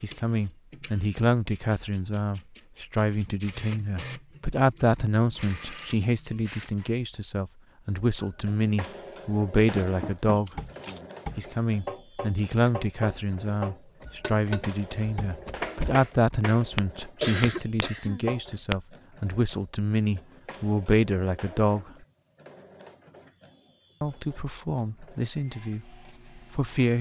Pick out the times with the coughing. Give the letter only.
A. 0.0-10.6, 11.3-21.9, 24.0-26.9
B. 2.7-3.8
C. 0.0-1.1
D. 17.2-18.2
D.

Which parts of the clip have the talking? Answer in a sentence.
You can hear the talking from 0.0 to 10.6 s, from 11.3 to 21.9 s and from 24.0 to 26.9 s.